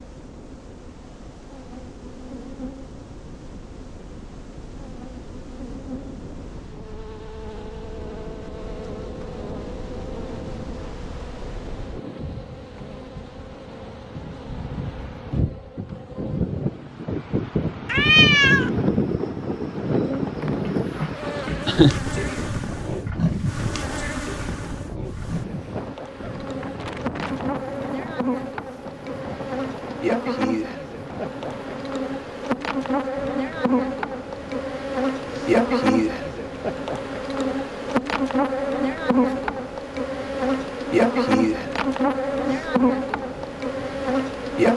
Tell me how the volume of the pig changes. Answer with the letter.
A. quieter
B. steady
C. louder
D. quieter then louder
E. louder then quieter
E.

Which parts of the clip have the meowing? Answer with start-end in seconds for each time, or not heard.
17.9-18.7.